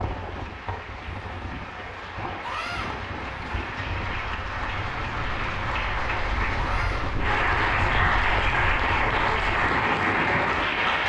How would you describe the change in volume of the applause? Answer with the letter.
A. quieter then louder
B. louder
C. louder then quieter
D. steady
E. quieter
B.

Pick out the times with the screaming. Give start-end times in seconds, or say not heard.
2.4-2.9, 6.5-7.0.